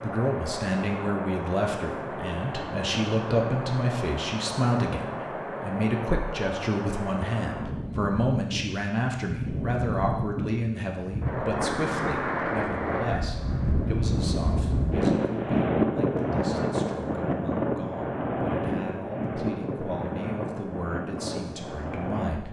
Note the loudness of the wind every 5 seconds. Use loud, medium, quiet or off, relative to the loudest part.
medium, medium, loud, loud, medium.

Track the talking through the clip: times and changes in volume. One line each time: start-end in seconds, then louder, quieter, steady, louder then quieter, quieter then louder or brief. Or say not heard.
0.0-22.4 quieter.